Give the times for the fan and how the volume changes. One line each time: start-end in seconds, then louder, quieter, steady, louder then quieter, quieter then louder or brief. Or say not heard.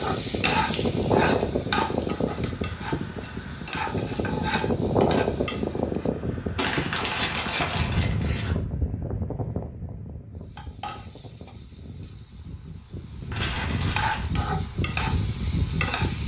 0.0-16.2 quieter then louder.